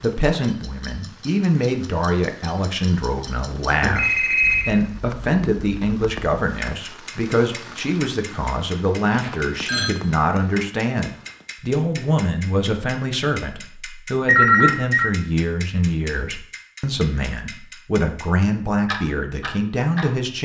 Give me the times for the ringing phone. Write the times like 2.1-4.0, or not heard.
3.8-4.7, 9.1-9.9, 14.2-15.1.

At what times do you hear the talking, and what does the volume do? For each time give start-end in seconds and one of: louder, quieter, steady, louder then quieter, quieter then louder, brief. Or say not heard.
0.0-20.4 steady.